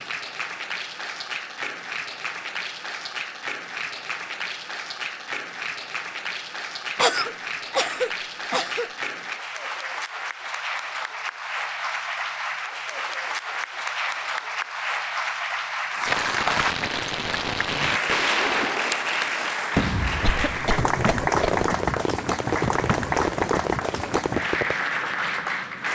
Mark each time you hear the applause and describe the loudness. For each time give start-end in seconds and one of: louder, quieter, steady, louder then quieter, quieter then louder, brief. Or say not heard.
0.0-25.9 louder.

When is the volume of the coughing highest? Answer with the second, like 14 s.
7 s.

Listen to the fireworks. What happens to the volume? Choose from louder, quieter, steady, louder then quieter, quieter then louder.
steady.